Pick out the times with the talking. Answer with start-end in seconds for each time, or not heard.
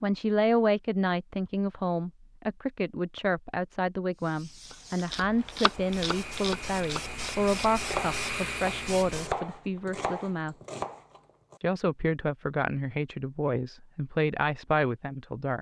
0.0-10.6, 11.6-15.5.